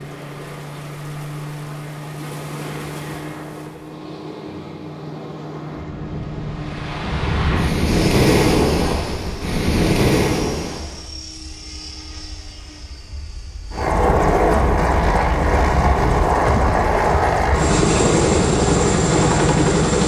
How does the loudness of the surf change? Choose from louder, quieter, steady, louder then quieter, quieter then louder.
louder.